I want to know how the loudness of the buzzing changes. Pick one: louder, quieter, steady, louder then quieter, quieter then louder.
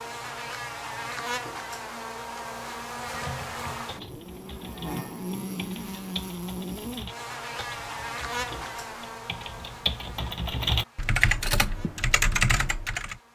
quieter.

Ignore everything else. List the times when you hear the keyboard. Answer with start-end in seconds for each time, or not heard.
3.0-13.2.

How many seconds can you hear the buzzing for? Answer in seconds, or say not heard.
13 s.